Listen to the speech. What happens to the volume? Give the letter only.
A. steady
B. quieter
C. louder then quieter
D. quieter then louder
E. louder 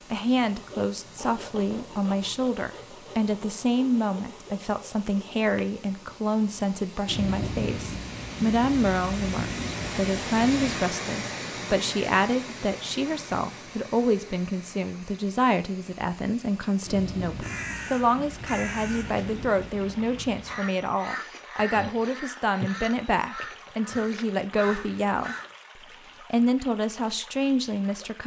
A.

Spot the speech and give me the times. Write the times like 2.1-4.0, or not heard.
0.1-28.2.